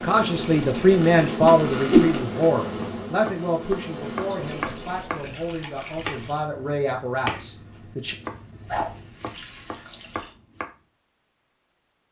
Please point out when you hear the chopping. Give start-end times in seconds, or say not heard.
2.6-10.7.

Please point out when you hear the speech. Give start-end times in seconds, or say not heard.
0.0-8.2.